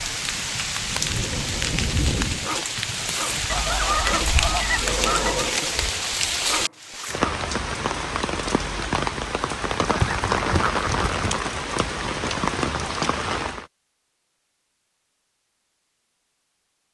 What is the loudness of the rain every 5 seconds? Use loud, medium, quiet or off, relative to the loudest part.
loud, loud, loud, off.